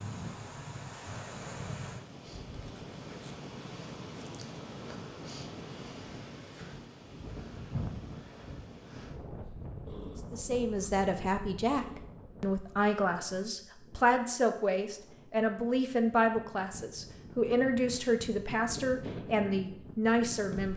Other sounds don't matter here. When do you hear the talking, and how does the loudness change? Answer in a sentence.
The talking can be heard from 10.3 to 20.7 s, at a steady volume.